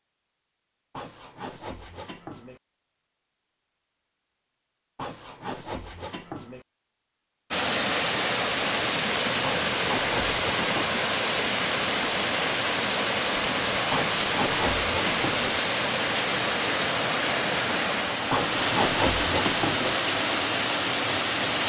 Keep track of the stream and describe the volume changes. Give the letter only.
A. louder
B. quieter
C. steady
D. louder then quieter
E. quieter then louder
C.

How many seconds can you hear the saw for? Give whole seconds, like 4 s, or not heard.
8 s.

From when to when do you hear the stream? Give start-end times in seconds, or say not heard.
7.5-21.6.